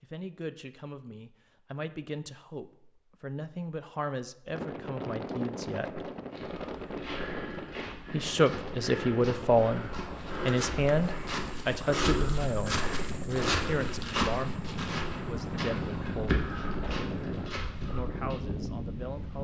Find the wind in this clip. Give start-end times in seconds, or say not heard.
4.5-19.3.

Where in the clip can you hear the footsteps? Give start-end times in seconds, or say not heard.
6.3-18.4.